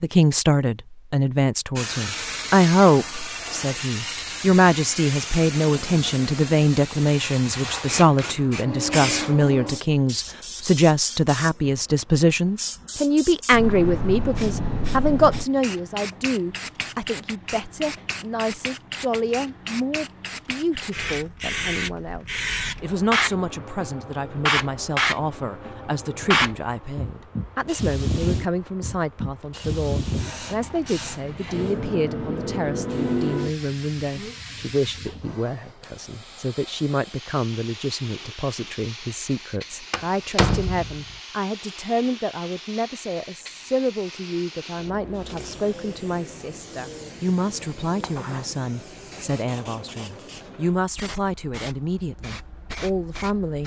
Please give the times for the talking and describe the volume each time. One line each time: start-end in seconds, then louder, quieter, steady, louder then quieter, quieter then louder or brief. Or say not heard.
0.0-53.6 quieter.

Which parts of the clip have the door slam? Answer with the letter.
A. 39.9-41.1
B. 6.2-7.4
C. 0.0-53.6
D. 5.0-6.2
A.